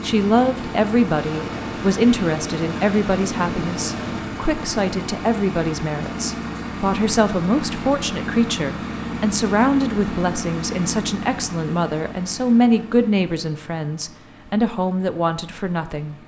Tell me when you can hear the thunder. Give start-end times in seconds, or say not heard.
1.3-4.3.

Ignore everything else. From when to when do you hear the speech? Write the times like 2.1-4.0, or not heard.
0.0-16.1.